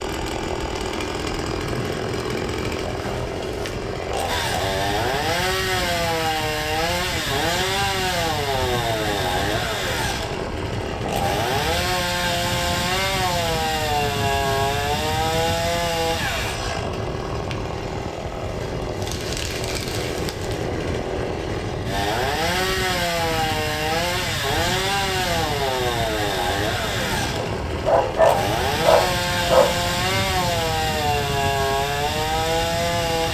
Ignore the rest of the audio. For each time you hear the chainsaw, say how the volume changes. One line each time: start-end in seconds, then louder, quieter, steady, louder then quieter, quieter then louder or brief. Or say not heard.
0.0-33.3 steady.